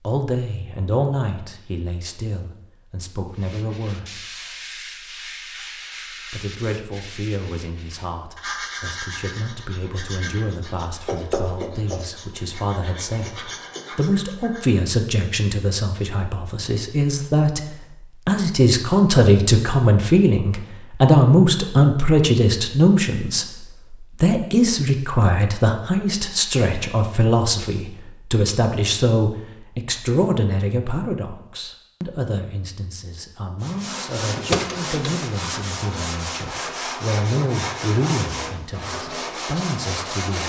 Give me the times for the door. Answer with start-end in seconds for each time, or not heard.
34.3-35.2.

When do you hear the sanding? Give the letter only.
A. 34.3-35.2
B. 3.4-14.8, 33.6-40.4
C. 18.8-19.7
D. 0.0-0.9
B.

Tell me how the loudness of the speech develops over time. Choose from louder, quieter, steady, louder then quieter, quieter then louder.
louder then quieter.